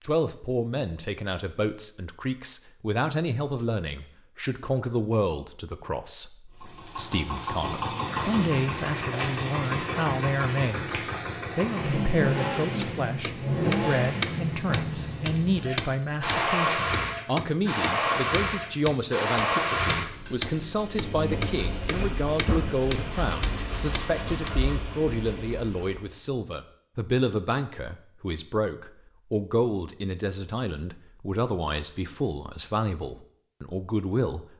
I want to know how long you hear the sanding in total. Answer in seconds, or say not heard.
2 s.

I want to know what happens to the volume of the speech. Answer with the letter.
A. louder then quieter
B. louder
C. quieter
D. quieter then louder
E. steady
E.